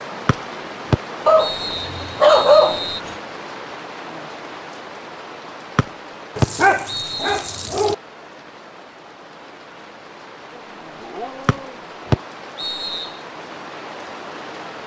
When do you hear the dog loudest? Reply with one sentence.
The volume of the dog peaks at 2 seconds.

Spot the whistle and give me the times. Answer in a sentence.
You can hear the whistle from 0.2 to 3.0 s, from 5.8 to 7.7 s and from 11.4 to 13.1 s.